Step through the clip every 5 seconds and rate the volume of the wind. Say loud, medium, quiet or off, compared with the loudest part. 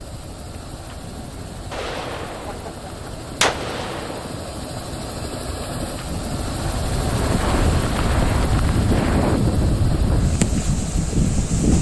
quiet, loud, loud.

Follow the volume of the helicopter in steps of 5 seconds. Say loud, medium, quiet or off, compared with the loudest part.
medium, loud, medium.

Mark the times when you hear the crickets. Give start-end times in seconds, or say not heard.
not heard.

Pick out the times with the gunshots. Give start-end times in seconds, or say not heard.
1.7-4.5.